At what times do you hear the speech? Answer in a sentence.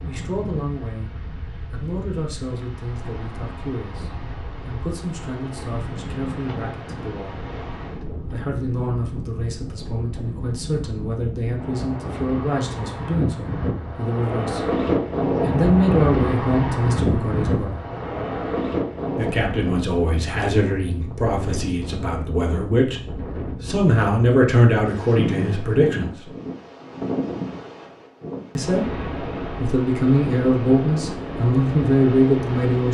You can hear the speech from 0.0 to 7.4 s, from 8.2 to 14.7 s, from 15.3 to 17.8 s, from 19.1 to 26.3 s and from 28.6 to 32.9 s.